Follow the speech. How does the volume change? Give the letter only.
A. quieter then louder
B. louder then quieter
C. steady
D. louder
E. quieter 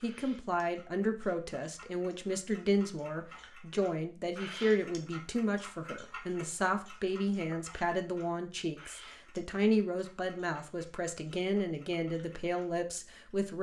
C.